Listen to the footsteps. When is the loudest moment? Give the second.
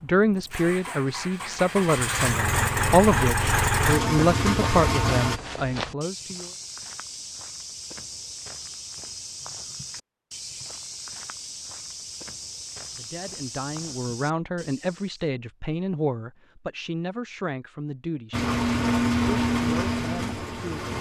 6 s.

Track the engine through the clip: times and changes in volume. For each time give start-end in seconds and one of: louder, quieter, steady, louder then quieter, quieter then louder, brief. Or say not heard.
0.0-5.4 louder
18.3-20.9 brief.